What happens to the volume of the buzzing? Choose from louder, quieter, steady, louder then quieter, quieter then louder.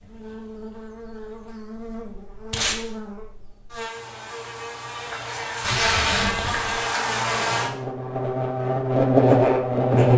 louder.